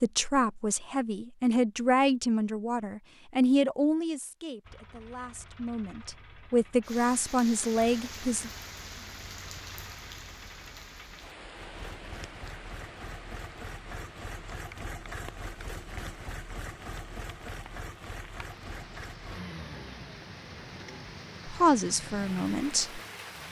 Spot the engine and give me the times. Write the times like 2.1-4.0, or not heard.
4.6-23.4.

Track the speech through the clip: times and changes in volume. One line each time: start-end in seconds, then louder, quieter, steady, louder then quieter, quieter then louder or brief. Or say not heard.
0.0-8.5 quieter then louder
21.4-23.0 brief.